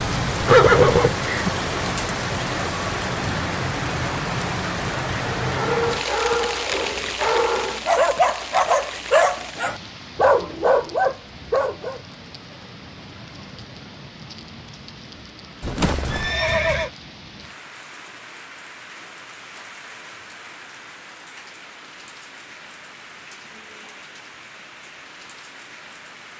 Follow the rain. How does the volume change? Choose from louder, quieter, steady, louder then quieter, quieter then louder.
quieter.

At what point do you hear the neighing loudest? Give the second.
1 s.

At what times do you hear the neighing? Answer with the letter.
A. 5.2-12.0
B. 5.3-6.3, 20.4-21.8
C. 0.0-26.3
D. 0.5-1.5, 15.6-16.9
D.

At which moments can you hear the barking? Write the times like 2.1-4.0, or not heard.
5.2-12.0.